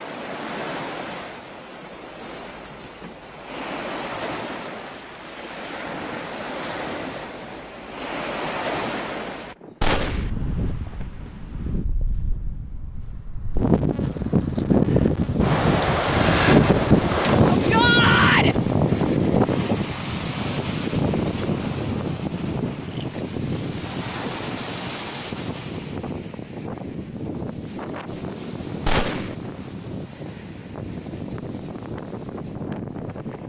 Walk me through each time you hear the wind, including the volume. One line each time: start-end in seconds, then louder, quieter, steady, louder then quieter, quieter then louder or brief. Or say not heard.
0.0-33.4 louder then quieter.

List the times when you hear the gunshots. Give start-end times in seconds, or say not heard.
9.8-10.3, 28.9-29.4.